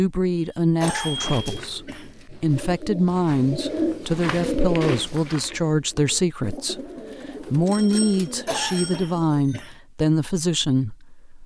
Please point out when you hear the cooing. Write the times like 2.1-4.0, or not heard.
0.9-9.4.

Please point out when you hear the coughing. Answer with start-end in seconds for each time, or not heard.
0.8-2.1, 8.4-9.8.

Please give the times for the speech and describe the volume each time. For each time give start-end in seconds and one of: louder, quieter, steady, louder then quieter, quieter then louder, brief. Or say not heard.
0.0-11.4 steady.